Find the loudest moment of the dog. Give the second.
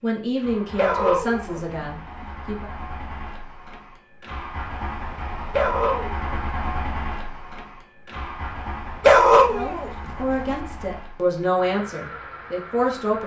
9 s.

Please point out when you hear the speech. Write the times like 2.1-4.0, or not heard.
0.0-2.7, 9.4-13.2.